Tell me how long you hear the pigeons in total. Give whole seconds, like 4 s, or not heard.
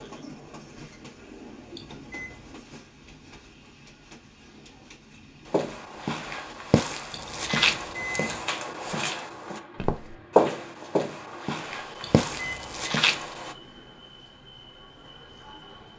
not heard.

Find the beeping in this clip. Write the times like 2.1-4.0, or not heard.
1.8-2.5, 7.1-8.4, 12.0-12.9.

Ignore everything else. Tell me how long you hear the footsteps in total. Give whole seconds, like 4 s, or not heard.
8 s.